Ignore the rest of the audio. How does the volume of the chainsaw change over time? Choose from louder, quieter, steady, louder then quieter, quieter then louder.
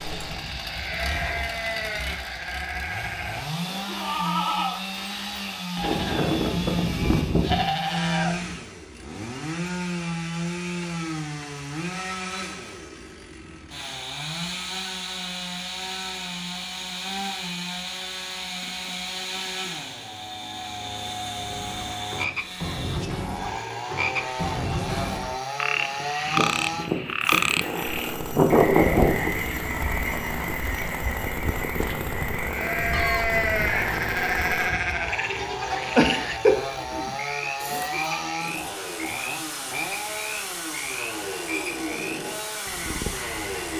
steady.